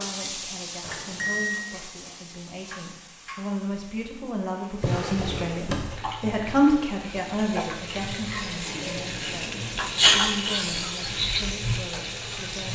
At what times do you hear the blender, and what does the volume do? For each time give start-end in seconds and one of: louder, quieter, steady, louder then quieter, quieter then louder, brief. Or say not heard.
not heard.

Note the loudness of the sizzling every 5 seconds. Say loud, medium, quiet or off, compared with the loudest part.
quiet, medium, loud.